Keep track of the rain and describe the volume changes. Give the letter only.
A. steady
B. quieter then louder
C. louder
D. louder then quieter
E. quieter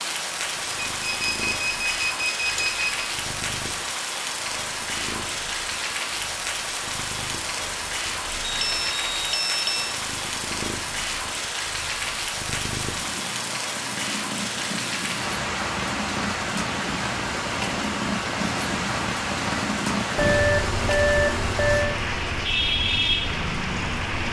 A.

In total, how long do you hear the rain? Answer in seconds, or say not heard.
24 s.